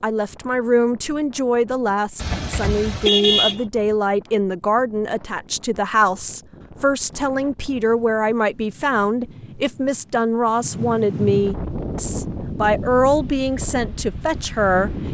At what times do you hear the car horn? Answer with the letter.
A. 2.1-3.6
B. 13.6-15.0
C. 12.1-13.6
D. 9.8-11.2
A.